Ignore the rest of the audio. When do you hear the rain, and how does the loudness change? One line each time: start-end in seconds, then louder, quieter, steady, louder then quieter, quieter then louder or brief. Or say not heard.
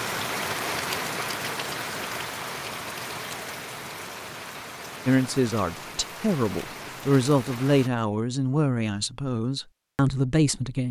0.0-7.9 quieter.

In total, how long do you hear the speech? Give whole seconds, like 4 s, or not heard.
6 s.